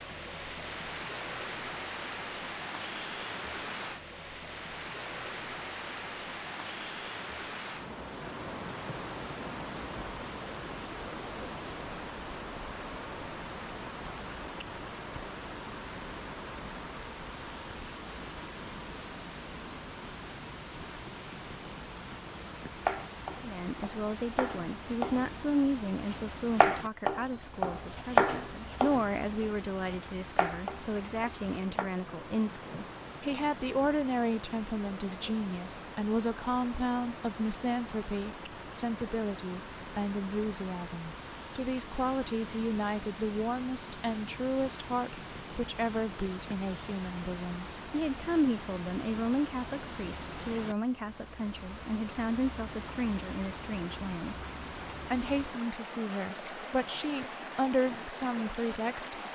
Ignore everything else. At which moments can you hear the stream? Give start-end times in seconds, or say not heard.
0.0-59.3.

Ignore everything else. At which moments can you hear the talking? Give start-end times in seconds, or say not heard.
23.4-54.4, 55.1-59.1.